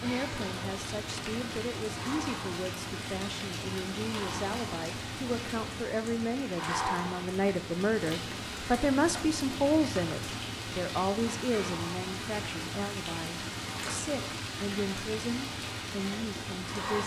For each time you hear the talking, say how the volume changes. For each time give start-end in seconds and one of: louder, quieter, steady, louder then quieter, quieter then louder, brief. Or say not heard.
0.0-17.0 louder then quieter.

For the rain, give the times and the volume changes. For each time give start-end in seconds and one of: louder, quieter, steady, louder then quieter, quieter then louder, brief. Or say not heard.
0.0-17.0 steady.